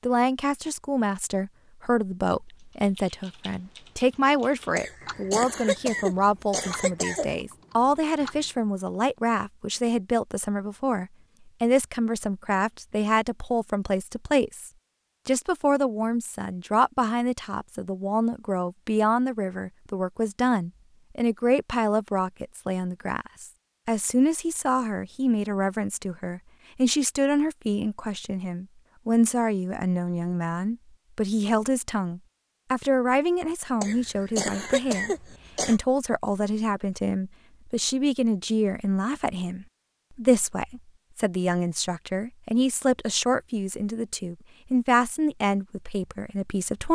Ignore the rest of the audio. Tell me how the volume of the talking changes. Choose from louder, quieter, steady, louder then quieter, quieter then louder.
steady.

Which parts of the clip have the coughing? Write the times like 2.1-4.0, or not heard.
4.8-7.3, 33.8-35.8.